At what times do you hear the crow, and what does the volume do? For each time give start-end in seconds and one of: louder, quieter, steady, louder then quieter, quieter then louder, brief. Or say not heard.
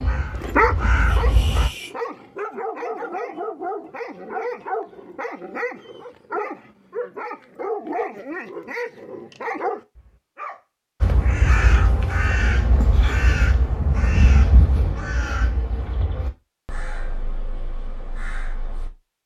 0.0-1.7 brief
11.0-18.9 quieter.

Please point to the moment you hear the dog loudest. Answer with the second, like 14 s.
1 s.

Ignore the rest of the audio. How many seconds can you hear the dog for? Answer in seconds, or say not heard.
10 s.